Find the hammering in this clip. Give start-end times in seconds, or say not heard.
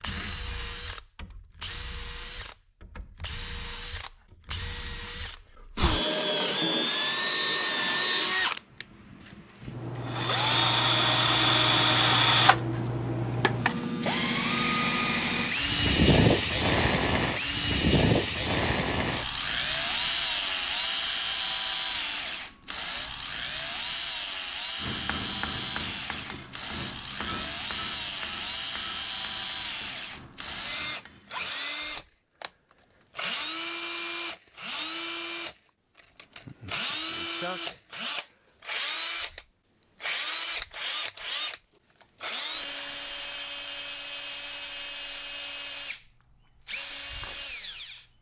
24.8-31.6.